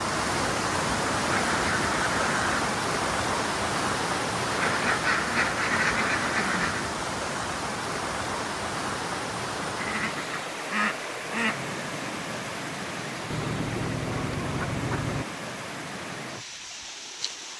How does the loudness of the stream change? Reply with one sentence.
The loudness of the stream goes down.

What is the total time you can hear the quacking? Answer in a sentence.
The quacking can be heard for 8 seconds in total.